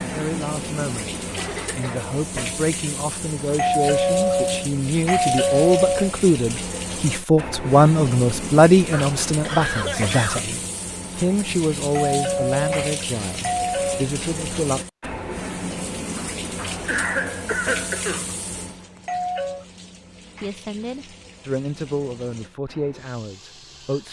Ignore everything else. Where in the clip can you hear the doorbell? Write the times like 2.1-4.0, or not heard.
3.5-6.2, 11.8-14.1, 18.9-19.6.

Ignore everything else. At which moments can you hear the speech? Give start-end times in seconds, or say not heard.
0.0-14.8, 20.4-24.0.